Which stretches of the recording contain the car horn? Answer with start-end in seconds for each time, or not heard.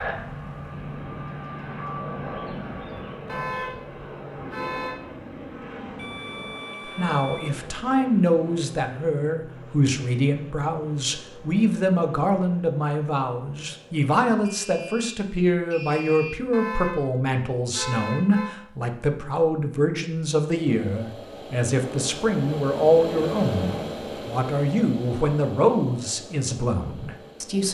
3.2-5.0, 16.5-18.5.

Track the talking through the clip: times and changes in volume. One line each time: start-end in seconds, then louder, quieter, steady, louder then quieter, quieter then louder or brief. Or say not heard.
7.0-27.6 steady.